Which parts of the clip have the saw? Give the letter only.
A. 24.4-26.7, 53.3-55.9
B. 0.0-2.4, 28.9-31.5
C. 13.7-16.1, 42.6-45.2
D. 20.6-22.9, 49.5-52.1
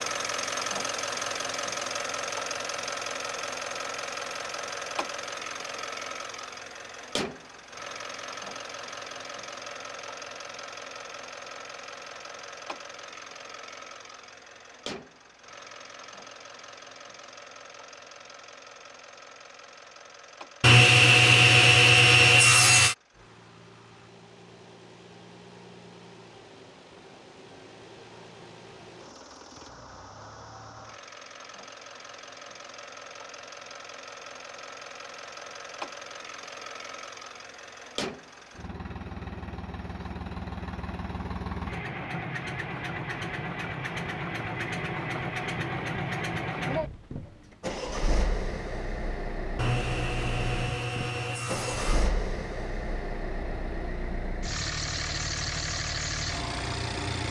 D.